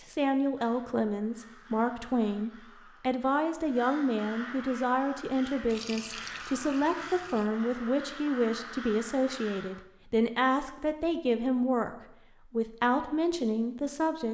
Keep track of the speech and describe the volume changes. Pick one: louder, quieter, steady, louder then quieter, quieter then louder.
steady.